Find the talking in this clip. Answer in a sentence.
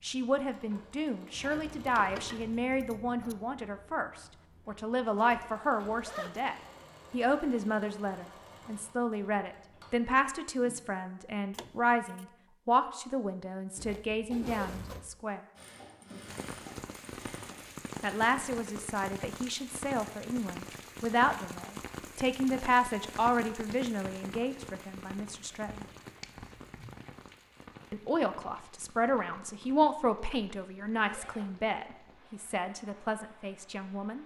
You can hear the talking from 0.0 to 15.4 s, from 18.0 to 25.8 s and from 27.9 to 34.2 s.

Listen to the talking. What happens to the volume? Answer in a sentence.
The volume of the talking stays about the same.